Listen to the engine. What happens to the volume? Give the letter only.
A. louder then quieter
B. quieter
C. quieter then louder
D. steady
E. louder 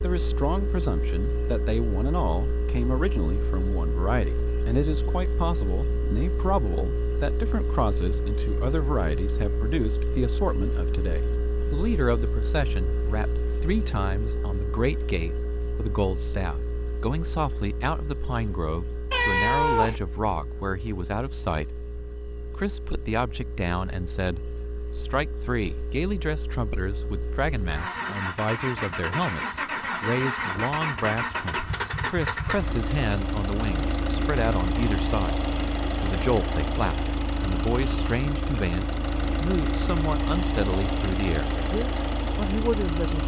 C.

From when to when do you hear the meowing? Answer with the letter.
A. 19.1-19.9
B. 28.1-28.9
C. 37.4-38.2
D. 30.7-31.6
A.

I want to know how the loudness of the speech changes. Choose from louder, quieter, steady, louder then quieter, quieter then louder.
steady.